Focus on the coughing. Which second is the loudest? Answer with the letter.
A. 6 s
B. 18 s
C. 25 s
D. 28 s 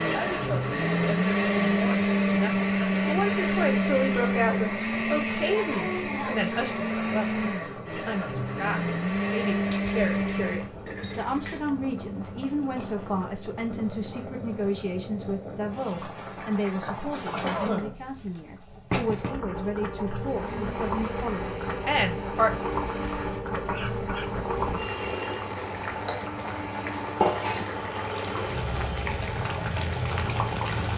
B.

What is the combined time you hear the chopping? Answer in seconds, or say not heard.
not heard.